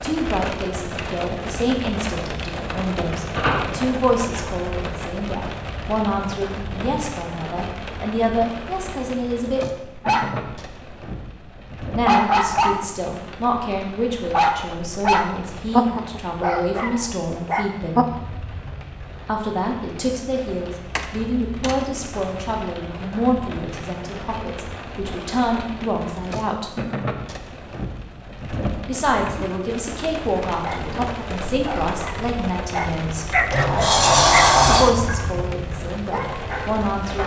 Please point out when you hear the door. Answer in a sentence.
You can hear the door from 3.4 to 4.5 s, from 20.9 to 21.9 s and from 33.5 to 35.0 s.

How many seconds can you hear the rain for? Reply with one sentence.
You can hear the rain for 37 seconds altogether.